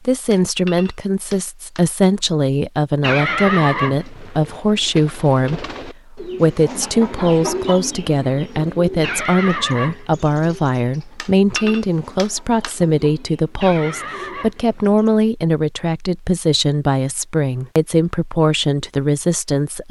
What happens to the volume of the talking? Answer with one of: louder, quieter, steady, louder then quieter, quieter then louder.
steady.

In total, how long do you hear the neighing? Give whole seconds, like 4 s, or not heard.
5 s.